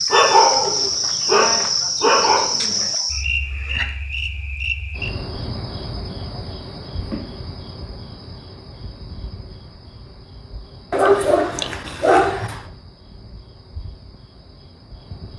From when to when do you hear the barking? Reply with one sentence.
The barking can be heard from 0.1 to 3.0 s and from 10.9 to 12.6 s.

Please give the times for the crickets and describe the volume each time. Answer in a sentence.
You can hear the crickets from 0.0 to 15.3 s, getting quieter.